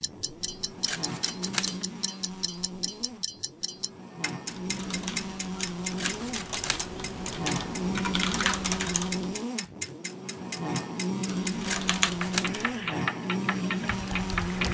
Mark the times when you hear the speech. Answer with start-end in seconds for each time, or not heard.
not heard.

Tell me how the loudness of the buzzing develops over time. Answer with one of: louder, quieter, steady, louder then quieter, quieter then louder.
louder.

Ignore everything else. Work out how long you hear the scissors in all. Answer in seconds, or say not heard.
3 s.